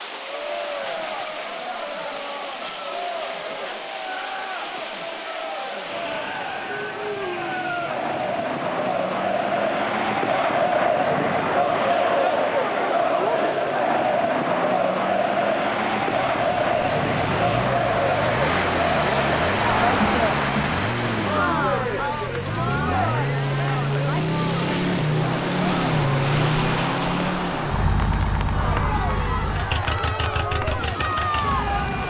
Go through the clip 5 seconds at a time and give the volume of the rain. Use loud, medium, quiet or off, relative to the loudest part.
medium, medium, medium, loud, loud, medium, medium.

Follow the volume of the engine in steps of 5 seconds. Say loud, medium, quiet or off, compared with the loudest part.
off, off, off, medium, loud, loud, medium.